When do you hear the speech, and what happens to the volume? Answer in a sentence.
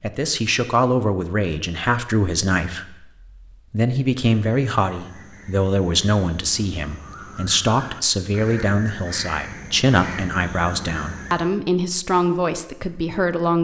The speech can be heard from 0.0 to 13.5 s, at a steady volume.